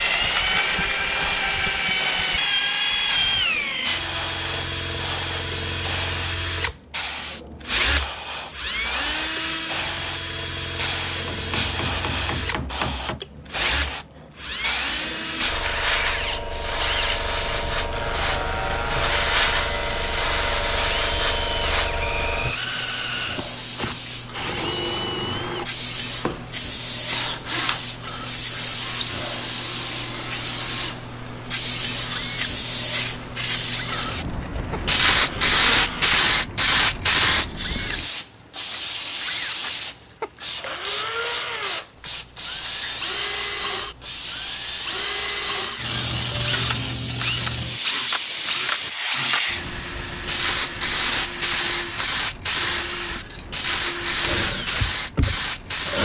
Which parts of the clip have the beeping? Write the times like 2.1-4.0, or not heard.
not heard.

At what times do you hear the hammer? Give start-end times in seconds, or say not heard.
11.2-13.2.